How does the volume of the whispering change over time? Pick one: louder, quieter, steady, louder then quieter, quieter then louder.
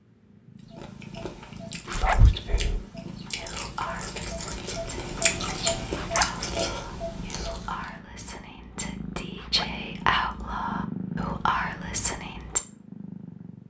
quieter then louder.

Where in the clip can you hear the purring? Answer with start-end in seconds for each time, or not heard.
0.0-13.6.